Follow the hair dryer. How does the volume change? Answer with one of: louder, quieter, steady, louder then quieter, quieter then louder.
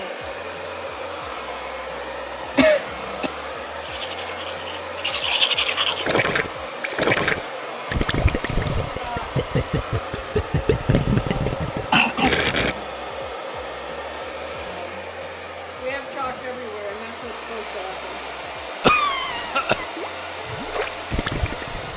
steady.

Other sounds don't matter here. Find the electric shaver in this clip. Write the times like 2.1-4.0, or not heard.
not heard.